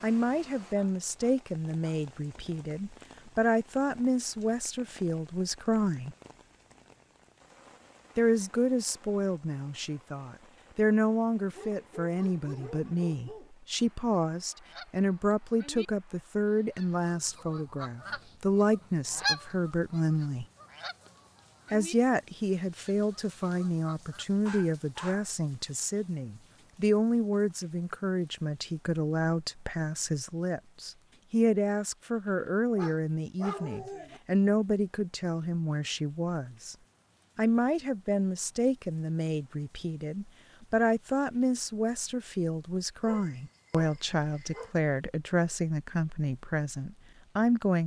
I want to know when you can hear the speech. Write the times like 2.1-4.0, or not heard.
0.0-6.2, 8.2-20.4, 21.7-36.8, 37.4-47.8.